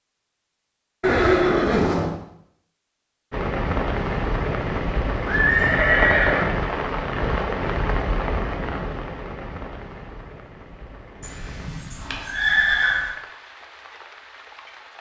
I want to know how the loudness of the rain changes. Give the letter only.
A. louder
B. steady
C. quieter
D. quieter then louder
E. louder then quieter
C.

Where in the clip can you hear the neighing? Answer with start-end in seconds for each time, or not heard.
1.0-2.1, 5.2-6.5, 11.2-13.2.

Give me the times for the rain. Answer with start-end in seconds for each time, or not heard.
3.3-14.9.